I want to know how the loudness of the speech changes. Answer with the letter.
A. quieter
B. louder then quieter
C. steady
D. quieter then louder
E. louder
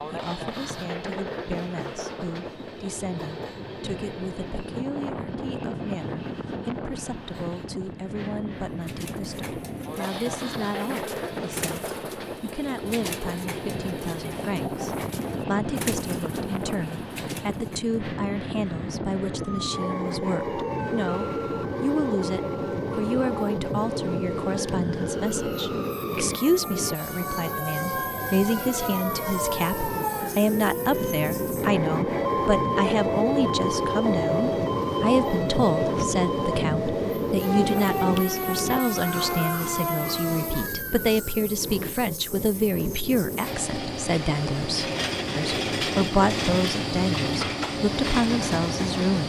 E.